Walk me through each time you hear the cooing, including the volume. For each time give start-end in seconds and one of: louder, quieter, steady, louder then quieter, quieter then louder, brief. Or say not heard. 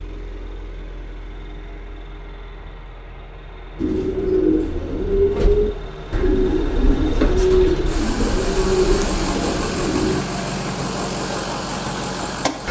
3.8-10.2 steady.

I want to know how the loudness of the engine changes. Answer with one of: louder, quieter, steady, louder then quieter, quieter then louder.
louder.